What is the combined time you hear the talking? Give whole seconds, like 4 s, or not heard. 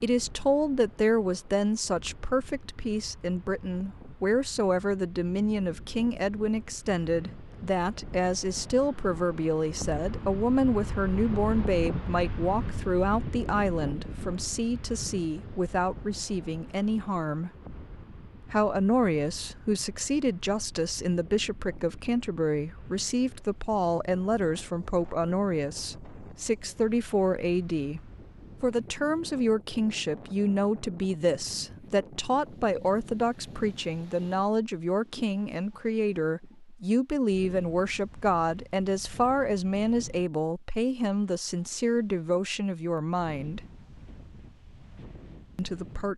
43 s.